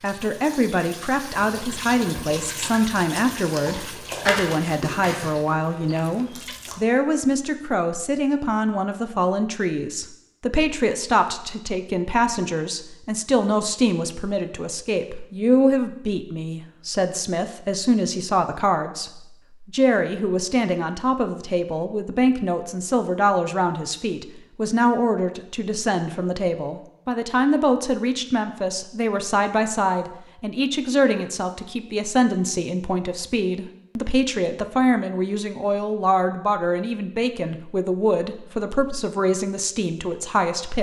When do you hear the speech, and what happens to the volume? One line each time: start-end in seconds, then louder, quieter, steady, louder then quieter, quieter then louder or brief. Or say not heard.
0.0-40.7 steady.